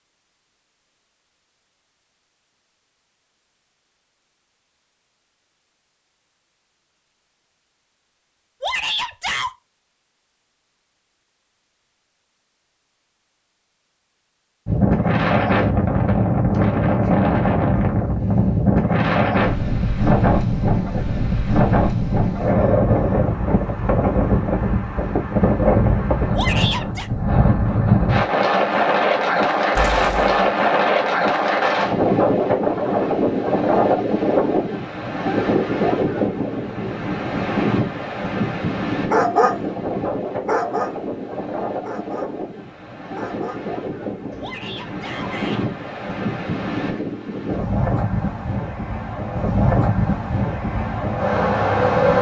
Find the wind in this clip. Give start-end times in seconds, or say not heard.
14.7-52.1.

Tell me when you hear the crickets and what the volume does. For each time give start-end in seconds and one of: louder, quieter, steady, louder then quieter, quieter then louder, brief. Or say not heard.
not heard.